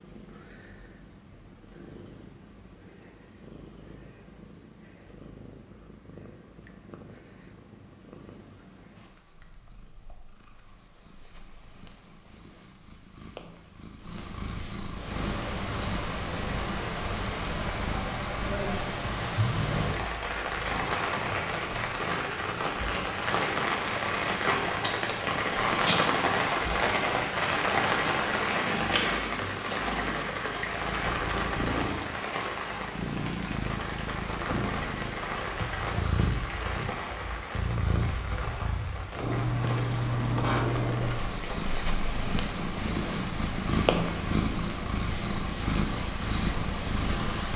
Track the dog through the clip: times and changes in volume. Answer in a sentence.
The dog can't be heard in this clip.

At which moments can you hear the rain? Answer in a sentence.
You can hear the rain from 14.9 to 47.5 s.